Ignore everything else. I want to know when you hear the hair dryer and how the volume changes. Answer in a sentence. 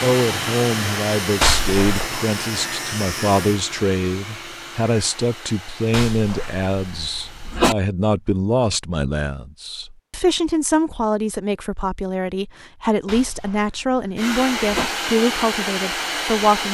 You can hear the hair dryer from 0.0 to 7.7 s, getting quieter; and briefly from 14.2 to 16.6 s.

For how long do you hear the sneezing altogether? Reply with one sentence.
The sneezing can be heard for 4 seconds in total.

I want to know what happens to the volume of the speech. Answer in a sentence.
The volume of the speech stays about the same.